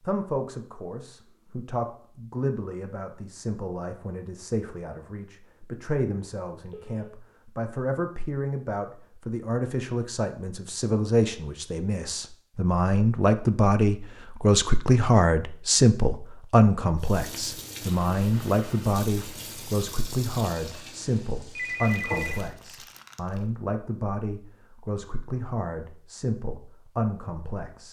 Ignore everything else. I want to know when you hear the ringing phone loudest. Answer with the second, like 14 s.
22 s.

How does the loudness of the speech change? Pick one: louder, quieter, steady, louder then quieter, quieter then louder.
louder then quieter.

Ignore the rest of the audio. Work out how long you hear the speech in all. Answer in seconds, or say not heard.
28 s.